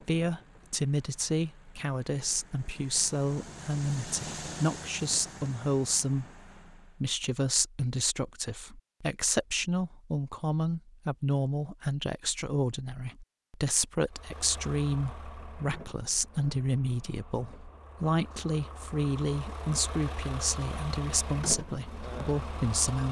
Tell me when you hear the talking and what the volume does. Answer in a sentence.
The talking can be heard from 0.1 to 23.0 s, at a steady volume.